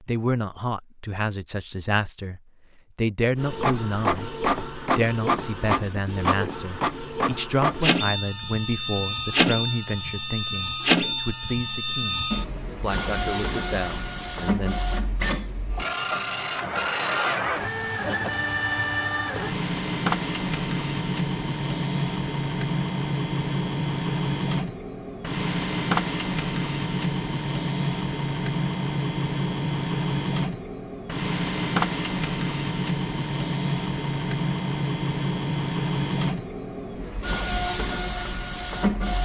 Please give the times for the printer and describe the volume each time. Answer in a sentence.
You can hear the printer from 3.4 to 39.2 s, at a steady volume.